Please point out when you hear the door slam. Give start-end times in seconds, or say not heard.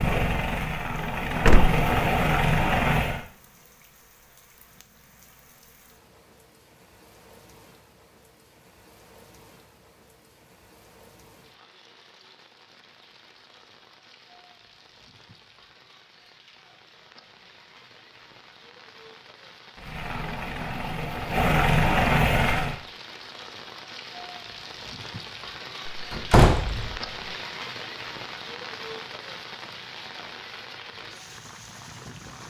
1.4-1.8, 25.9-27.0.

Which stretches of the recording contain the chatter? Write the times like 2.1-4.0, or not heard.
not heard.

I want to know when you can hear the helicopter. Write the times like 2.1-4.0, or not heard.
0.0-3.2, 19.8-22.8.